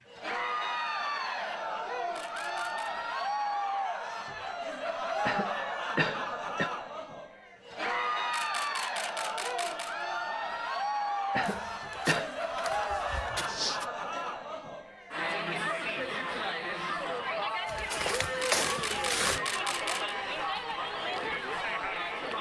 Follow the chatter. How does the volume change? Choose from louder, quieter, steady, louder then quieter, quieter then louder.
steady.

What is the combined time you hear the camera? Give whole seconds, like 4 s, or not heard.
4 s.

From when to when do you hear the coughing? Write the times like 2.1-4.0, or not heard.
5.2-6.7, 11.3-12.3.